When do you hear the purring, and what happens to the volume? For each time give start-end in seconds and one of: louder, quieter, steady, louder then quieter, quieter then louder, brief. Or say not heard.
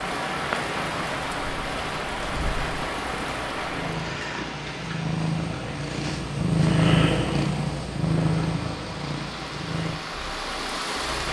0.0-11.2 louder then quieter.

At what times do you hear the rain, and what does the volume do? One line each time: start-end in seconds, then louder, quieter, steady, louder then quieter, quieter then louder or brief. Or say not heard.
0.0-11.2 quieter then louder.